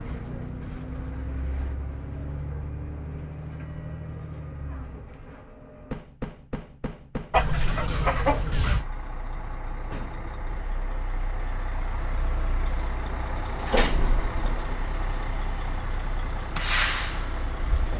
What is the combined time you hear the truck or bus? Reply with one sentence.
The truck or bus can be heard for 18 seconds in total.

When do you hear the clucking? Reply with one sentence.
You can hear the clucking from 7.3 to 8.8 s.